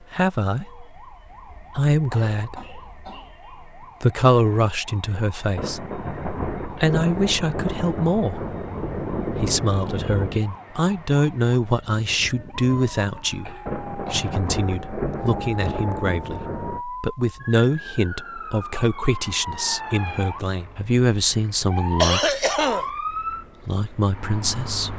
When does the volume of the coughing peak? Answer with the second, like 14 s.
22 s.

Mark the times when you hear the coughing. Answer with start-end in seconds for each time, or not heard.
1.4-3.4, 13.4-14.3, 22.0-22.9.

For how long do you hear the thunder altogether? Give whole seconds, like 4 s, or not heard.
8 s.